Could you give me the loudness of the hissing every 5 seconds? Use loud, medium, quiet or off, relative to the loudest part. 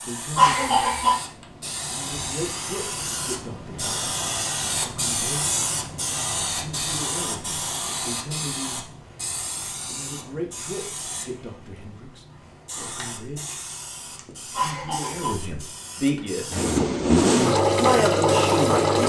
loud, loud, medium, medium.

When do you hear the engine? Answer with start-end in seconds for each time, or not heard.
16.5-19.0.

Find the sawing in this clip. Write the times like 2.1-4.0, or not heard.
not heard.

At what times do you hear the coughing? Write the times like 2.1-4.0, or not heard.
0.3-1.1, 14.5-15.3.